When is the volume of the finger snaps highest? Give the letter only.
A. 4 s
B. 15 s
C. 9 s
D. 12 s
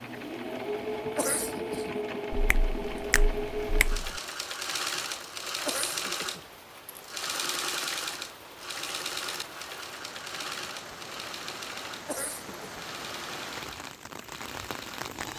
A.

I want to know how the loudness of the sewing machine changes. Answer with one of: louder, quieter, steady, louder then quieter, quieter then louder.
quieter.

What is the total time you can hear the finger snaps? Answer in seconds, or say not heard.
2 s.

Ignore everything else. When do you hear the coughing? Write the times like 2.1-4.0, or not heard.
1.1-1.9, 5.7-6.4, 12.1-12.7.